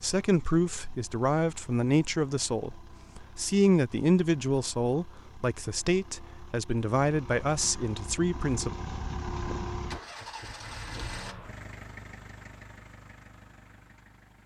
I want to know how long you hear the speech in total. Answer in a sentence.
You can hear the speech for 9 seconds altogether.